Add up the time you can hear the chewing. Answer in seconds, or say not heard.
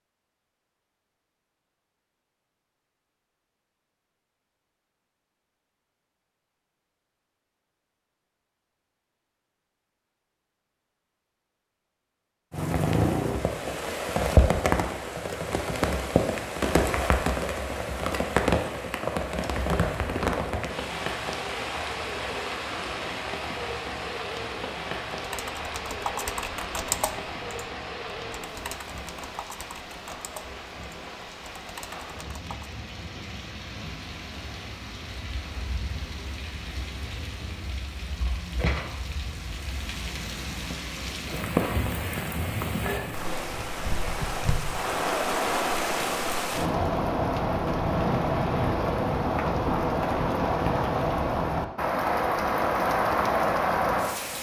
not heard.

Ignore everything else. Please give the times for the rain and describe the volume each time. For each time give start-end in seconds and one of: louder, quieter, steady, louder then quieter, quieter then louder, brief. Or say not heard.
12.5-54.3 quieter then louder.